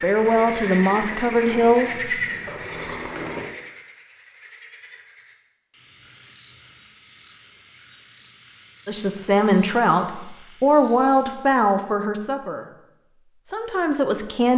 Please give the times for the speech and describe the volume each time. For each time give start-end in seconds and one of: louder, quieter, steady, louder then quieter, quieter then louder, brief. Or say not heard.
0.0-2.2 brief
8.8-14.5 quieter then louder.